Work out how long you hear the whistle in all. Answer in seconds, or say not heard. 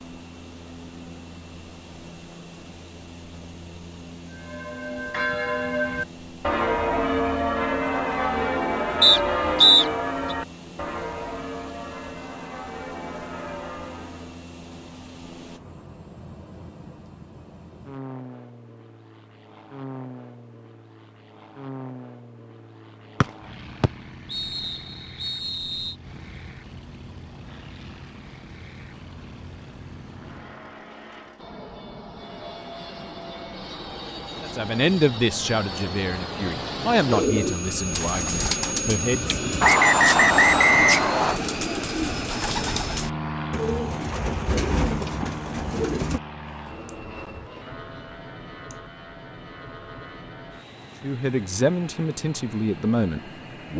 6 s.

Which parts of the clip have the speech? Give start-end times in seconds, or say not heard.
34.4-39.4, 51.0-53.7.